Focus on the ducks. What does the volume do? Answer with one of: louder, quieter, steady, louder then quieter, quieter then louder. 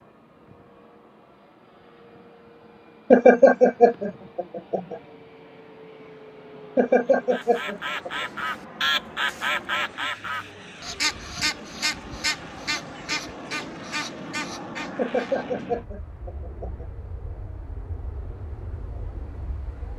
quieter.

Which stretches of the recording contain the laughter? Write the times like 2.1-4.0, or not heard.
3.1-5.0, 6.8-8.2, 14.9-16.9.